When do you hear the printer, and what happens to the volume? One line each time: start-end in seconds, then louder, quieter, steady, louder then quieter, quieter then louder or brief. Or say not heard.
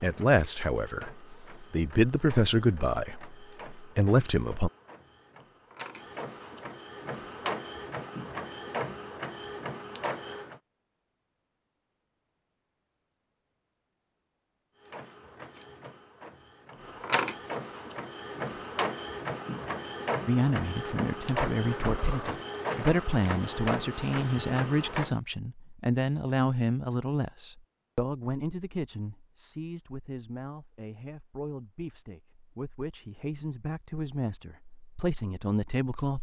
0.0-10.6 louder
14.8-25.1 louder.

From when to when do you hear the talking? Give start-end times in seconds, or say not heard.
0.0-4.7, 20.2-36.1.